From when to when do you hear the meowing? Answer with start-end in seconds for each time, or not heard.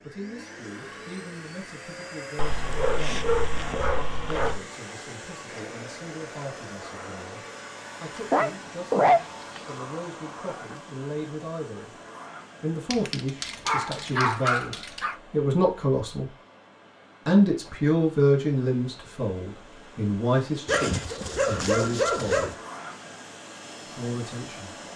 not heard.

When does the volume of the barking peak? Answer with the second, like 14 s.
9 s.